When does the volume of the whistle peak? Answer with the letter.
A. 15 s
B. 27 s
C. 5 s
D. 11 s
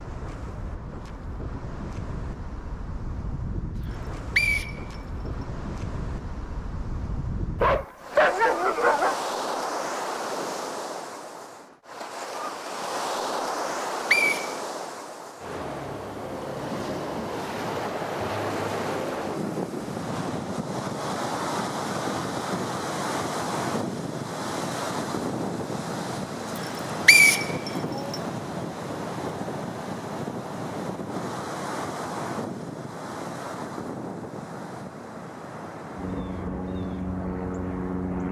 B.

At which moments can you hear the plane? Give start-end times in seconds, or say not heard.
36.0-38.2.